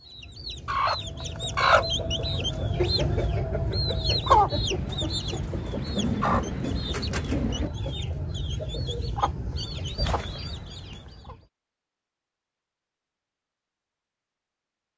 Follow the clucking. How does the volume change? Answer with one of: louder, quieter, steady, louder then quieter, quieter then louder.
quieter.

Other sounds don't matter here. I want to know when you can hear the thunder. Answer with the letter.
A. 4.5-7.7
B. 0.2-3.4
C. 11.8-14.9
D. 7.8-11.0
A.